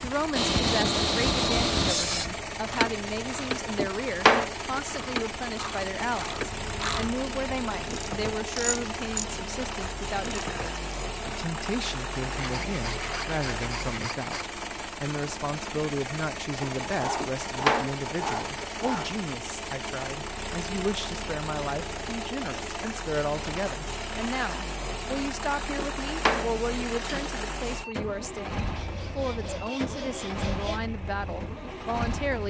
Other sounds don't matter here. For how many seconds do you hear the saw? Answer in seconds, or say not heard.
9 s.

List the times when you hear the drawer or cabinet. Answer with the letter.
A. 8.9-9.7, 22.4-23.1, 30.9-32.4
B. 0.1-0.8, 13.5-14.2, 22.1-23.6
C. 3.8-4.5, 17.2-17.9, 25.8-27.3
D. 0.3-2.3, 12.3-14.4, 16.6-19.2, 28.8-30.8
C.